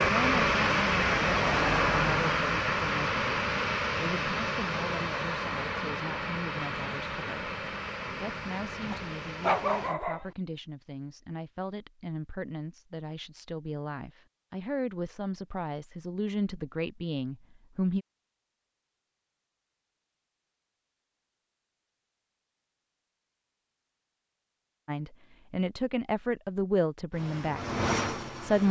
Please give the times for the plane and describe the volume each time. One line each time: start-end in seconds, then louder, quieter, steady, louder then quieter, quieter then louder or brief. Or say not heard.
0.0-9.9 quieter
27.1-28.6 brief.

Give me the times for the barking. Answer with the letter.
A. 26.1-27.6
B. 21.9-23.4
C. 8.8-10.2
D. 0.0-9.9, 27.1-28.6
C.